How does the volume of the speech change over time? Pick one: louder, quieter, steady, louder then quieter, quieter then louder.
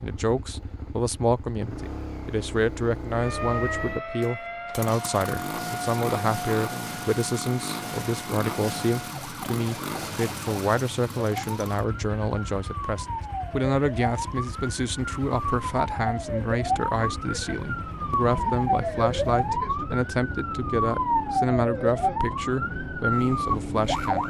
steady.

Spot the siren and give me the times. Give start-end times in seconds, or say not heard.
3.1-24.2.